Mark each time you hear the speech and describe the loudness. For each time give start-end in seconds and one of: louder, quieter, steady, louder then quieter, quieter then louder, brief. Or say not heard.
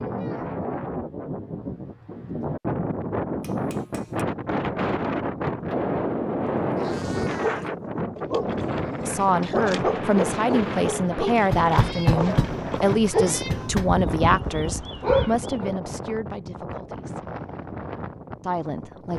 9.1-17.3 quieter
18.4-19.1 brief.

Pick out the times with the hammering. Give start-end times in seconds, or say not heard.
3.4-4.2, 11.5-13.9.